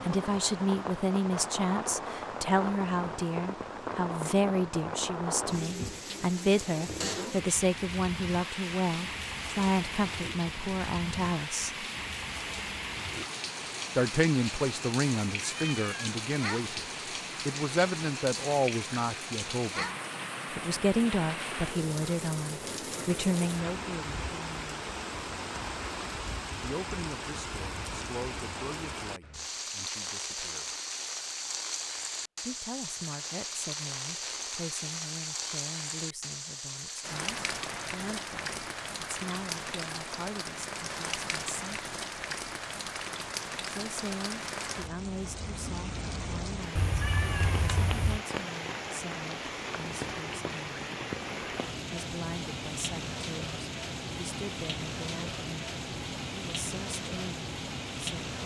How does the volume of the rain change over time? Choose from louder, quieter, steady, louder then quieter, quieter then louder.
steady.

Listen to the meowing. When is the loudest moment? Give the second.
47 s.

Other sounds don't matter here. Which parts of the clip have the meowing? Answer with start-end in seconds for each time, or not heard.
15.3-16.1, 46.8-48.2.